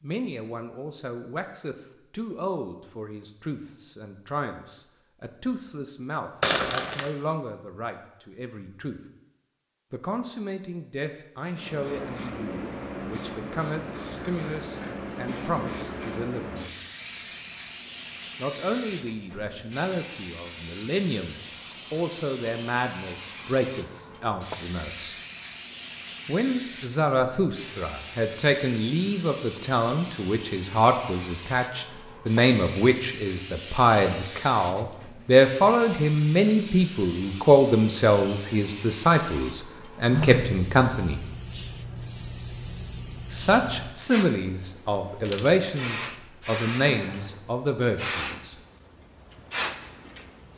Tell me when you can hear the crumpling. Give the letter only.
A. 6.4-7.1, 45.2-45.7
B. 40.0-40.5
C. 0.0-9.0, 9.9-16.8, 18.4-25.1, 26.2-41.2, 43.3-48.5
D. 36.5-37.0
A.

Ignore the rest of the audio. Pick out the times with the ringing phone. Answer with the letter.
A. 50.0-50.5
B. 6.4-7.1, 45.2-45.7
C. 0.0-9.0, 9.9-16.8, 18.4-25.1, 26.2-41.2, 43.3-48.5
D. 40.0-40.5
D.